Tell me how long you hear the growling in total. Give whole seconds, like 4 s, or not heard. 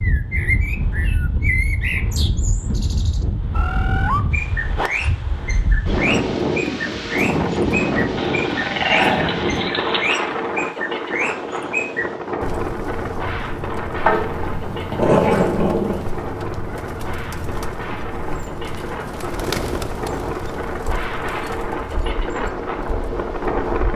4 s.